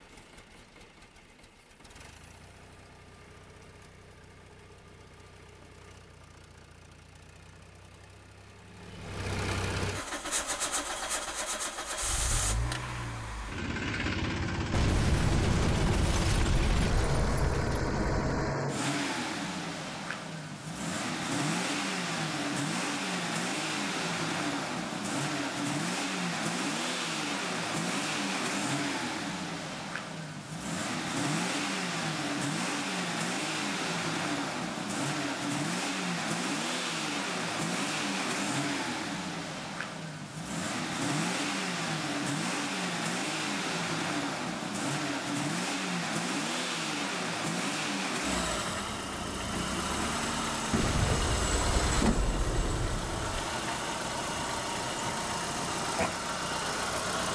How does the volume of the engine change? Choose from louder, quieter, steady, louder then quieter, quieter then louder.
louder.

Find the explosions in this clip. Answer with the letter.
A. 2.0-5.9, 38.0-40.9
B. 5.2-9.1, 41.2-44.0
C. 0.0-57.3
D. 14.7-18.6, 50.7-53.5
D.